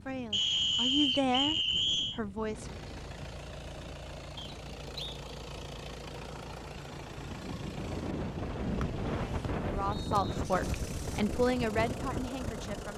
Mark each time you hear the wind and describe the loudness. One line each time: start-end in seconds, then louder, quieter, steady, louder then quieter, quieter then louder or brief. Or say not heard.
0.0-12.9 louder.